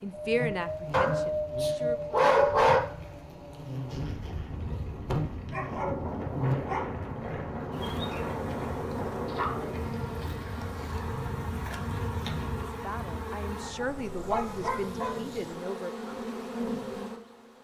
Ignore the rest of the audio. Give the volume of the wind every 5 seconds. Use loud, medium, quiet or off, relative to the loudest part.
loud, loud, medium, off.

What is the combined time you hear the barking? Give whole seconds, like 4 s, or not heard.
7 s.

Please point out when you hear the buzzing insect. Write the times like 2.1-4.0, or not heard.
0.0-17.5.